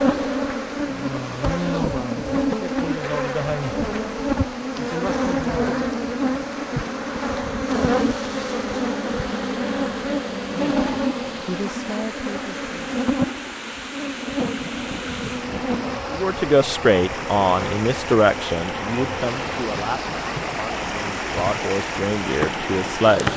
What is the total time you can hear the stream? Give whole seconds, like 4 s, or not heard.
23 s.